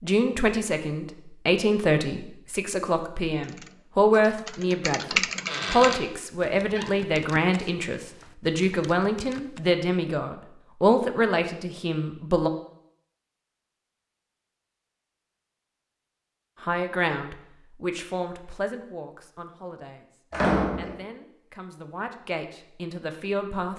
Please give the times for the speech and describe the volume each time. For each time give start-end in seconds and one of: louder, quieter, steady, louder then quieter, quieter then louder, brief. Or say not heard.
0.0-12.5 steady
16.6-23.7 quieter then louder.